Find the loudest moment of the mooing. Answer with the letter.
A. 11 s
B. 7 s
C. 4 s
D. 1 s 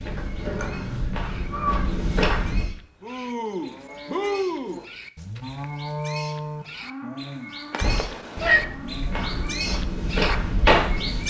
C.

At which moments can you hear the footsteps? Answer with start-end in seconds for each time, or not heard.
0.0-2.6, 7.8-11.2.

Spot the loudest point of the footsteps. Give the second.
11 s.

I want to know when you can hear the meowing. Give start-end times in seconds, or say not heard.
0.5-1.9, 7.7-8.7.